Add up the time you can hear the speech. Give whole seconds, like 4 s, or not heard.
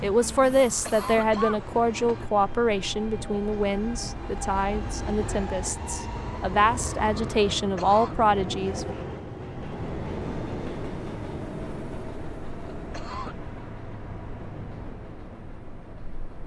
9 s.